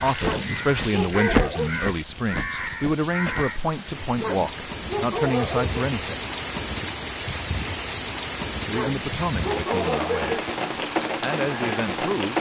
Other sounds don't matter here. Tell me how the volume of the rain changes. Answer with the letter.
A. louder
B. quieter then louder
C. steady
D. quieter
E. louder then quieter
A.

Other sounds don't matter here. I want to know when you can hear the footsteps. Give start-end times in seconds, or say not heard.
0.1-3.5.